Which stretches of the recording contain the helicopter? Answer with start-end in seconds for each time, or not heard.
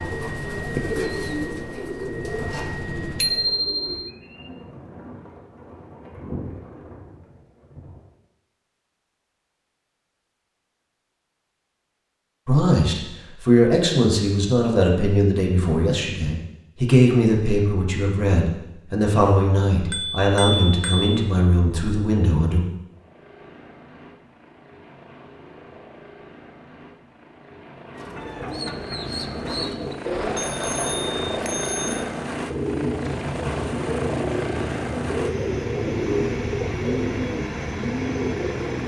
0.0-3.6, 22.9-38.8.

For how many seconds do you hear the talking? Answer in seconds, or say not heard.
10 s.